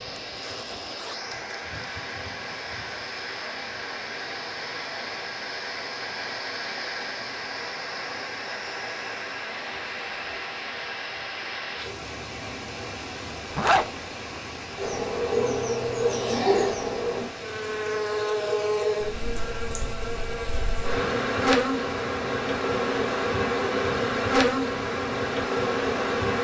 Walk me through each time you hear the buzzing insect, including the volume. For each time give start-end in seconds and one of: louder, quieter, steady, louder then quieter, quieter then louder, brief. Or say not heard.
14.8-26.3 steady.